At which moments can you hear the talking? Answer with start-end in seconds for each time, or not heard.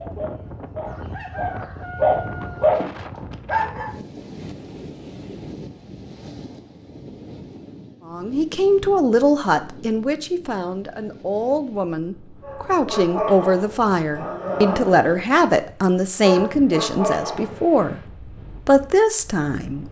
8.1-19.8.